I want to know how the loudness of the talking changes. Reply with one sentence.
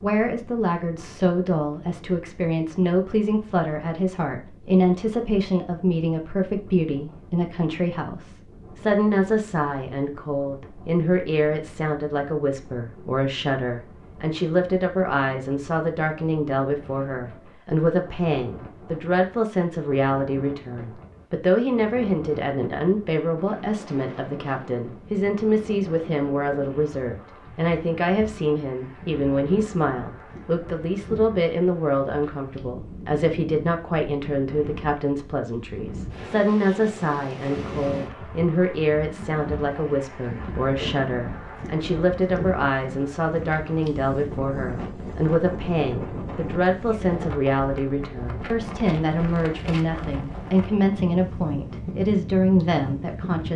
The loudness of the talking stays about the same.